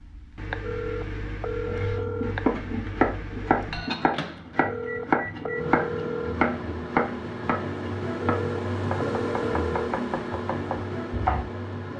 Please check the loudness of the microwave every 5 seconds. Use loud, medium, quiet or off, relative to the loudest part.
medium, loud, loud.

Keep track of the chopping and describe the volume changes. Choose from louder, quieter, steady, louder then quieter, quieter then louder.
quieter.